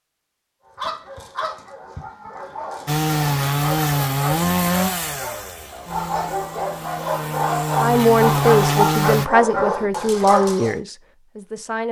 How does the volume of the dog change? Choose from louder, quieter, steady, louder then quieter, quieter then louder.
louder.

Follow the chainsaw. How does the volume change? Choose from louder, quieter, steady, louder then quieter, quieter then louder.
quieter then louder.